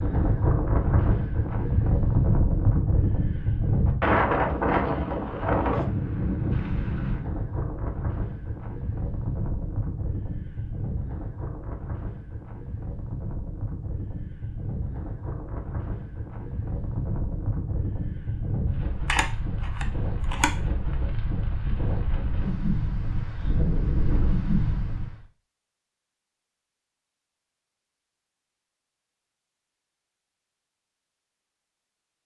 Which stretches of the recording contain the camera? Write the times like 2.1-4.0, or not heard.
19.1-20.5.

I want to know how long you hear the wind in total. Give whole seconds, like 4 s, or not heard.
25 s.